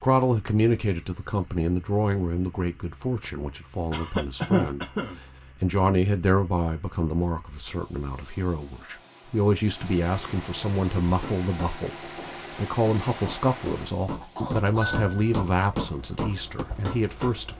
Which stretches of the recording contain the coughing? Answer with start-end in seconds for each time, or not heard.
3.9-5.2, 14.0-15.2.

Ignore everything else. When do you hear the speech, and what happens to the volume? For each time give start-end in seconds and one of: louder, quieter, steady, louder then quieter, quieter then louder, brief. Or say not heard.
0.0-17.5 steady.